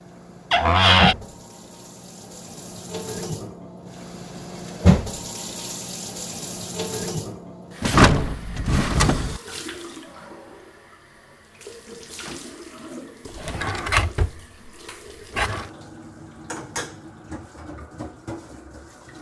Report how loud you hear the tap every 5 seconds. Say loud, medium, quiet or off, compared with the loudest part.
loud, medium, quiet, medium.